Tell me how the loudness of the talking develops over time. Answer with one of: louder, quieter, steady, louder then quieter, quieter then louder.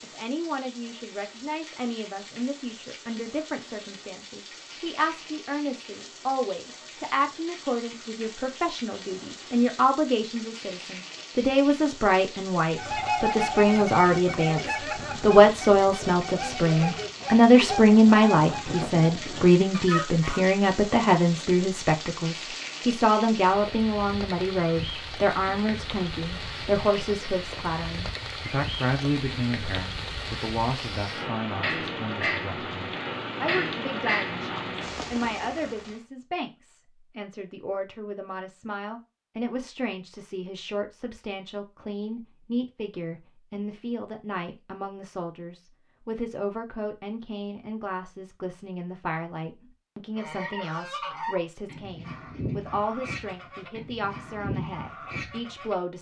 louder then quieter.